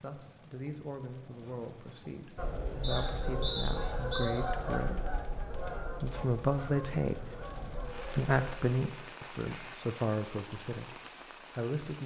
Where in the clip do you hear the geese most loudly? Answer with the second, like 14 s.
4 s.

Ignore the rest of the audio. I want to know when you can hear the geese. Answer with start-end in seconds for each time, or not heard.
2.4-8.6.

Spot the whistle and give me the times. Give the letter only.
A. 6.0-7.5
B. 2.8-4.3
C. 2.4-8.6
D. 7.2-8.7
B.